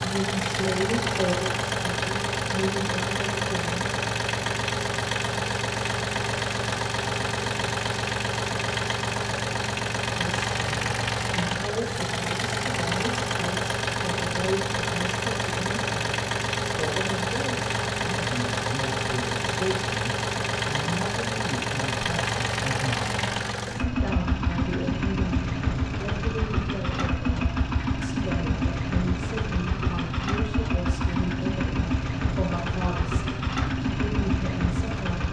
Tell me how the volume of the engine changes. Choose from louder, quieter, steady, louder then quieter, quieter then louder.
steady.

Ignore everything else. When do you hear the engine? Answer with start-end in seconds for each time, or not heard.
0.0-35.2.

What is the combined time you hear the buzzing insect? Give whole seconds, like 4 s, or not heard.
not heard.